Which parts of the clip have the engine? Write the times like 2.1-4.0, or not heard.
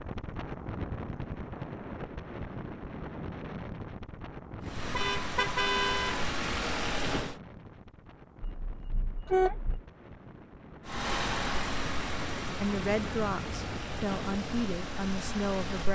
4.6-7.4, 10.8-15.9.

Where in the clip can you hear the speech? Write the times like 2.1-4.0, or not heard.
12.6-15.9.